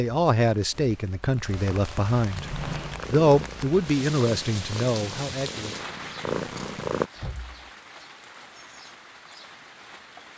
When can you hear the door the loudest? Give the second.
3 s.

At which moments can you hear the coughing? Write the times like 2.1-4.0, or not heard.
not heard.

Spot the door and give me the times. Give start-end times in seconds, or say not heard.
2.2-3.0, 7.2-7.7.